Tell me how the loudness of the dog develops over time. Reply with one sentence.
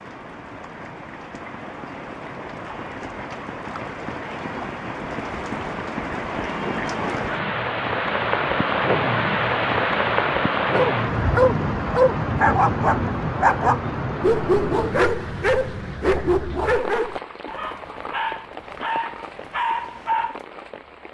The volume of the dog goes down.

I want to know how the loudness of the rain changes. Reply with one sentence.
The loudness of the rain goes up, then down.